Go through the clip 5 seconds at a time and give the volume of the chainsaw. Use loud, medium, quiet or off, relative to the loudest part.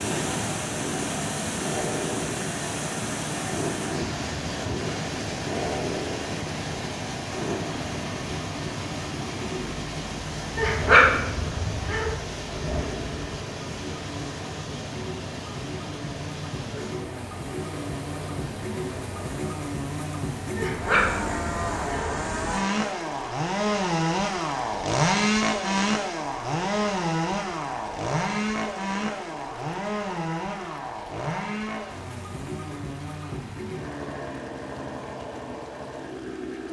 medium, medium, medium, medium, loud, loud, medium, medium.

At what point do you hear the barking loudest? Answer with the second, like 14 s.
11 s.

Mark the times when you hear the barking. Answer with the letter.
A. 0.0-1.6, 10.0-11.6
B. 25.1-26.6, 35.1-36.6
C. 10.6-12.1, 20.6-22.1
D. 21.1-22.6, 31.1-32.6
C.